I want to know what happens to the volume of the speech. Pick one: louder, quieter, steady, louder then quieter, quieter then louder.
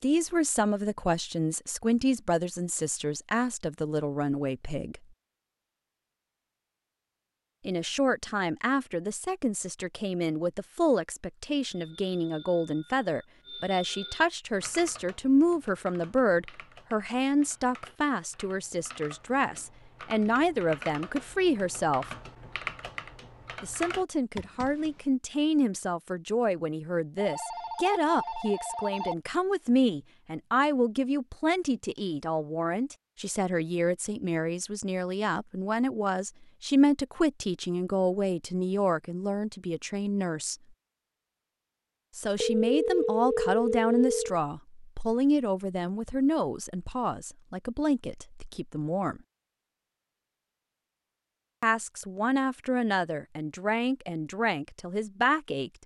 steady.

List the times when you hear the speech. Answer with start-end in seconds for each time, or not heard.
0.0-5.0, 7.7-22.1, 23.6-40.5, 42.1-49.2, 51.6-55.7.